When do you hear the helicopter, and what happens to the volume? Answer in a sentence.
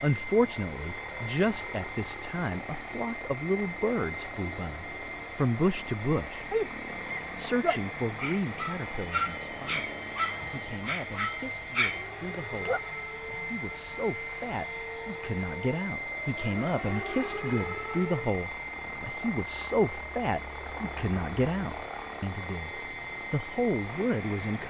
The helicopter can be heard from 0.0 to 24.6 s, at a steady volume.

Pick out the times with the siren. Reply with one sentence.
You can hear the siren from 11.8 to 18.3 s.